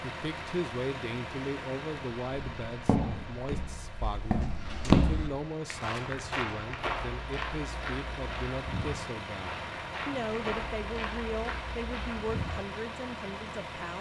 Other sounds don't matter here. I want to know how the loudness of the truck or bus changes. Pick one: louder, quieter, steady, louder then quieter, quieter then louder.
quieter then louder.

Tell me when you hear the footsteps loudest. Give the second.
5 s.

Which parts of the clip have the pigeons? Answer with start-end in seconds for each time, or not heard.
not heard.